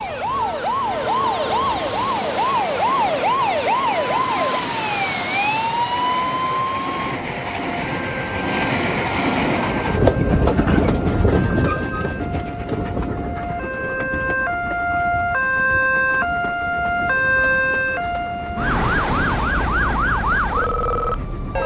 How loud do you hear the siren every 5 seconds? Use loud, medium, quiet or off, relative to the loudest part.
loud, loud, medium, loud, loud.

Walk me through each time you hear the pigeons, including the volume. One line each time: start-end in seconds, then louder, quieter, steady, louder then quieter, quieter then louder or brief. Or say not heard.
not heard.